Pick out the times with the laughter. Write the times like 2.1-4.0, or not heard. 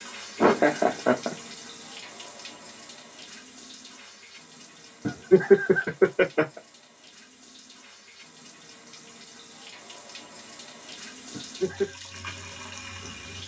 0.4-1.4, 5.0-6.6, 11.3-11.9.